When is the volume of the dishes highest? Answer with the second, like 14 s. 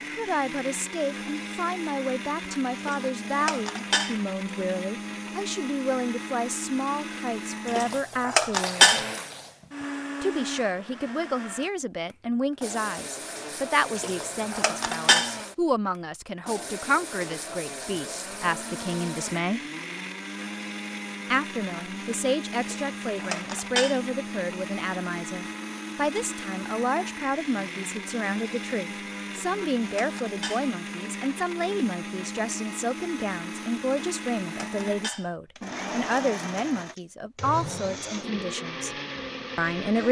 9 s.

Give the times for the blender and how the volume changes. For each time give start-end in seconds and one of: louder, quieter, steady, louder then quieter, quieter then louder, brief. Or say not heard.
0.0-40.0 steady.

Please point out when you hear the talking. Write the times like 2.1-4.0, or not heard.
0.1-9.0, 10.2-19.6, 21.3-38.9, 39.5-40.0.